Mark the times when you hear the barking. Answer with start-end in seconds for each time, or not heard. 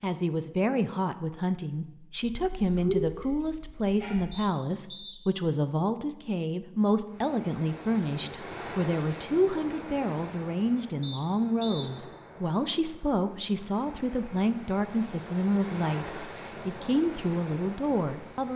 2.2-4.2.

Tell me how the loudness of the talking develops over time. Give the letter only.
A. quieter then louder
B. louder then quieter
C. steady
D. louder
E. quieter
C.